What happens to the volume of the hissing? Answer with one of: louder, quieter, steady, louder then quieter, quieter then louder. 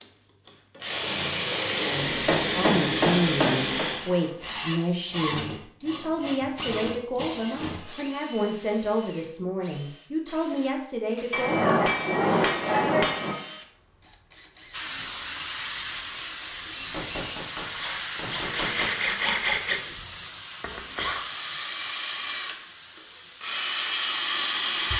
quieter.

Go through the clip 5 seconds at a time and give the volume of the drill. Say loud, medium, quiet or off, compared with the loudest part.
loud, medium, quiet, loud, loud.